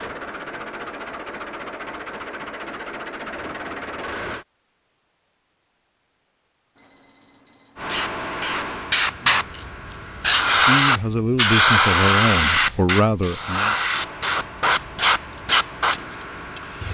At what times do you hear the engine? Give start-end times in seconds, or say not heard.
0.0-4.5, 7.8-10.4, 13.8-16.8.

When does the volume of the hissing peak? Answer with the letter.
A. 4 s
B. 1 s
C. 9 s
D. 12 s
D.